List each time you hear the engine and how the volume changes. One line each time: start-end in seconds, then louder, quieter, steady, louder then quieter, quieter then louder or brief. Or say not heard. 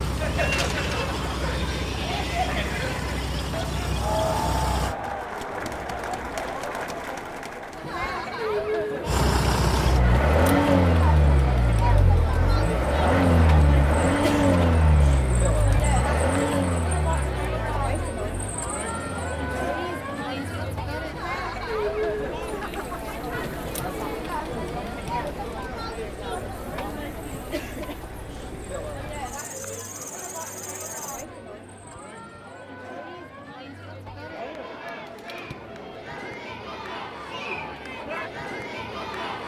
0.0-5.0 steady
9.1-31.3 quieter.